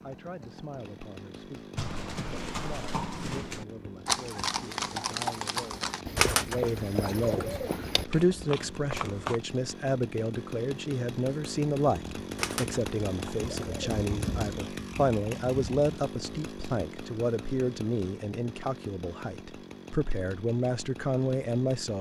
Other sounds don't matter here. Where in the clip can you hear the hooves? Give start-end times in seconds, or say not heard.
1.8-9.4.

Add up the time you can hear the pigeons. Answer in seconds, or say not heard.
3 s.